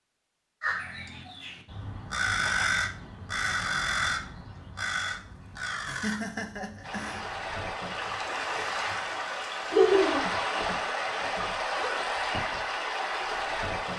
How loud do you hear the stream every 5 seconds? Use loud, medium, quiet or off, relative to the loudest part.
off, loud, loud.